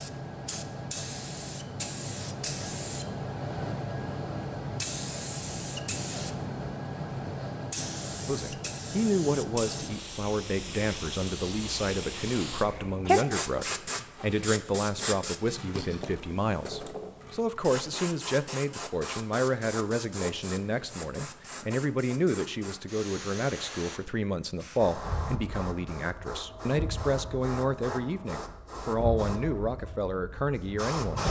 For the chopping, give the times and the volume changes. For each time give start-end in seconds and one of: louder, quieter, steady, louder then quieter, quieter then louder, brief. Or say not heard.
not heard.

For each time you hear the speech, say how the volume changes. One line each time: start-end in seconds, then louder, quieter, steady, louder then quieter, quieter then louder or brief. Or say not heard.
8.2-31.2 steady.